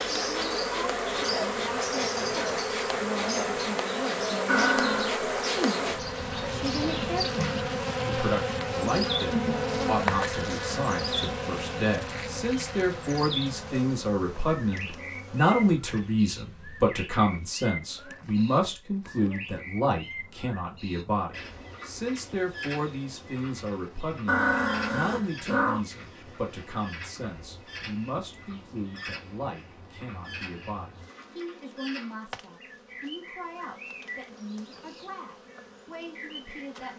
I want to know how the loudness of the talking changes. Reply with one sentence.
The volume of the talking goes up, then down.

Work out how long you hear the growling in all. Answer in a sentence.
The growling can be heard for 2 seconds in total.